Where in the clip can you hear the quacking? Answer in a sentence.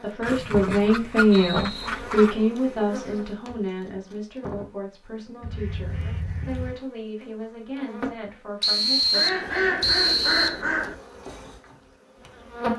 The quacking can be heard from 0.2 to 2.4 s, from 5.4 to 6.8 s and from 9.1 to 10.9 s.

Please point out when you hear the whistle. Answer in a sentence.
The whistle can be heard from 0.2 to 1.9 s and from 8.6 to 10.6 s.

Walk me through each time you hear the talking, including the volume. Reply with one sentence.
The talking can be heard from 0.0 to 9.2 s, getting quieter.